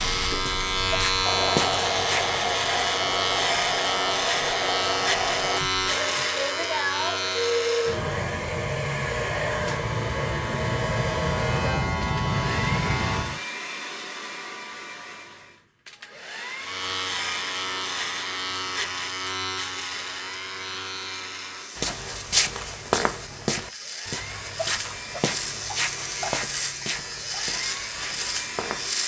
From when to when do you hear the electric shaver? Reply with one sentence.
You can hear the electric shaver from 0.0 to 13.4 s and from 16.6 to 29.0 s.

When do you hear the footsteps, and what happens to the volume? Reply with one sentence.
You can hear the footsteps briefly from 0.2 to 2.4 s; and from 21.8 to 28.9 s, getting quieter.